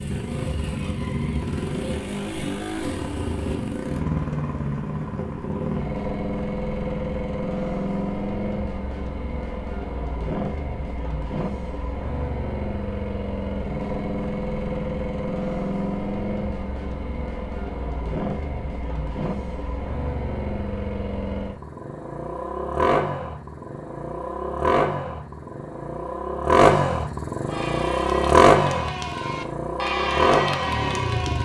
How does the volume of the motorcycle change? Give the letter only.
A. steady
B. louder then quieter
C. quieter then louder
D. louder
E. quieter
D.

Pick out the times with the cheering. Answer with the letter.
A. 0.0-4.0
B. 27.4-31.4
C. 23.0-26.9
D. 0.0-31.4
B.